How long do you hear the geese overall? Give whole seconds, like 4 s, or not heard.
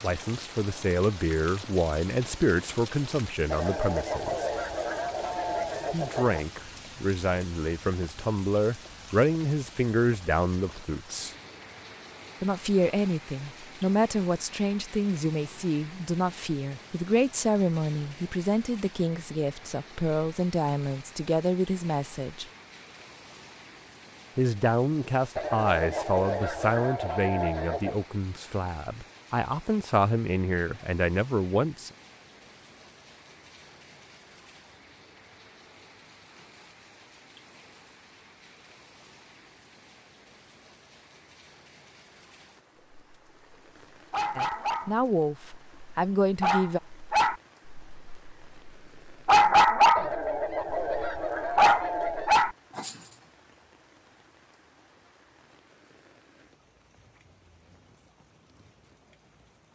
8 s.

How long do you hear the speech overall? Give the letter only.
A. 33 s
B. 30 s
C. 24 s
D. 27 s
B.